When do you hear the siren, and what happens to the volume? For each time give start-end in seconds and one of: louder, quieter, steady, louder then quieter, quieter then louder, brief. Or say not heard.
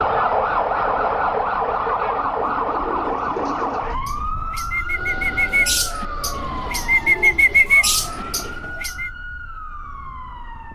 0.0-10.6 quieter.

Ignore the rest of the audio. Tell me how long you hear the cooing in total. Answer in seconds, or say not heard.
7 s.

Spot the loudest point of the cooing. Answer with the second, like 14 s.
8 s.